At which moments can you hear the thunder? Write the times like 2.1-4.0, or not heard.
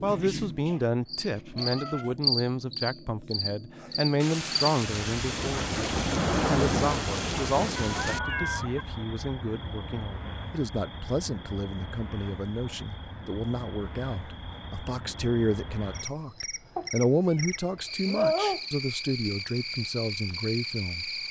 4.2-8.2.